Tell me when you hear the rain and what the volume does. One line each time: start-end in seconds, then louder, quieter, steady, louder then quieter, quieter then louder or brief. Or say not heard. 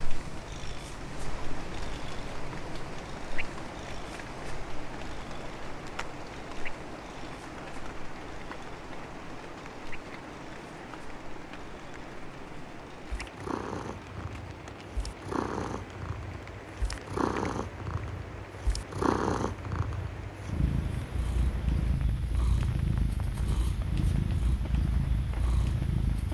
0.0-26.2 quieter.